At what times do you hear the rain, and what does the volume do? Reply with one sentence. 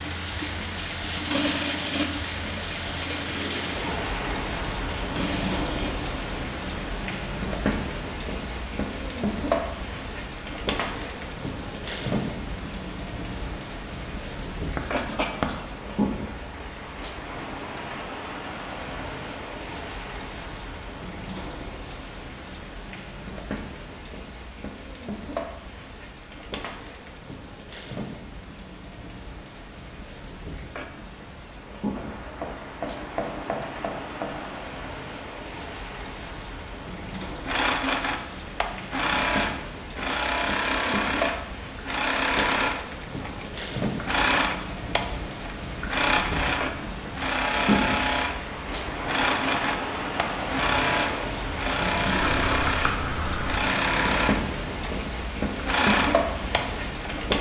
You can hear the rain from 0.0 to 57.3 s, getting quieter then louder.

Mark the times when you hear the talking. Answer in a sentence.
You can't hear the talking here.